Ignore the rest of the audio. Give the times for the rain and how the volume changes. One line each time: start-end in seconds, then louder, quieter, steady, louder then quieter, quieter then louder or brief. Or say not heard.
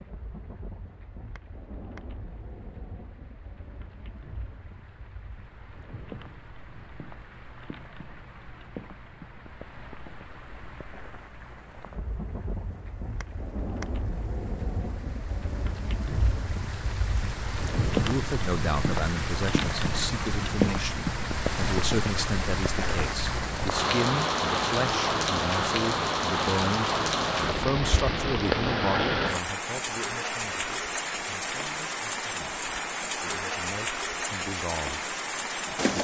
0.0-35.9 louder.